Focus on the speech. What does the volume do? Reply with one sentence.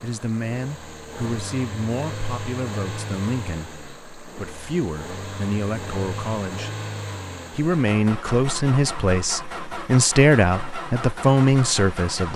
The loudness of the speech goes up.